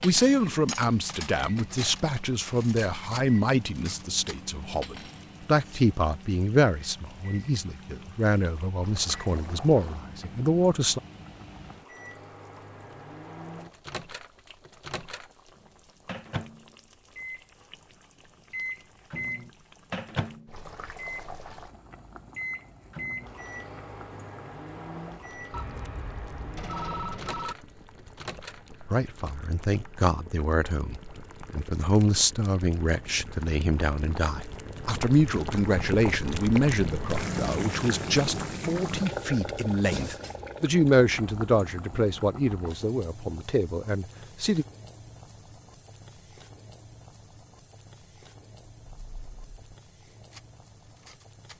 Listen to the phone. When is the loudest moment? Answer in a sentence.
The volume of the phone peaks at 27 seconds.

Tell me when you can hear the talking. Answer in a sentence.
You can hear the talking from 0.0 to 11.0 s and from 28.9 to 44.6 s.